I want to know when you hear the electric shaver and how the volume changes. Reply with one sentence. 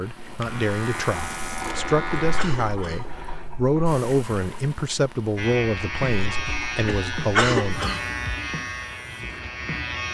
The electric shaver can be heard briefly from 0.1 to 2.5 s; and from 5.3 to 10.0 s, getting quieter.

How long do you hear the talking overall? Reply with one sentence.
The talking can be heard for 8 seconds in total.